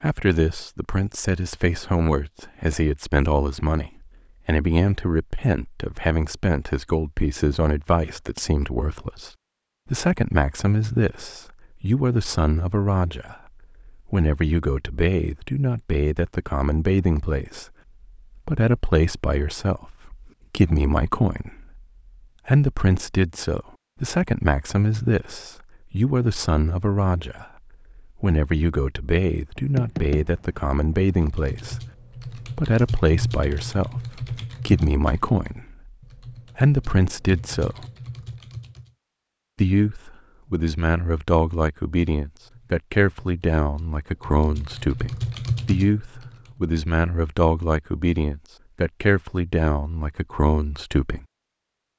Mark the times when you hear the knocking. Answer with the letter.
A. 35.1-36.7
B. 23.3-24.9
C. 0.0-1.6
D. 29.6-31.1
D.